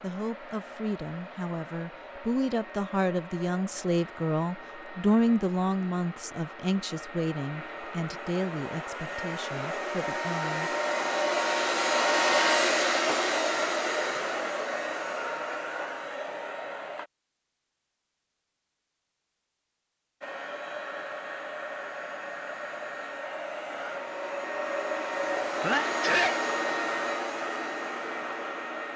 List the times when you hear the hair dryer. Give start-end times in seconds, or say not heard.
0.0-17.1, 20.2-28.9.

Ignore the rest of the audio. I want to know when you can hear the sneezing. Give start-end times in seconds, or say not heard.
25.6-26.4.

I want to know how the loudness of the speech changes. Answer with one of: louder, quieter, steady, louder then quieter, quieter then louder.
louder then quieter.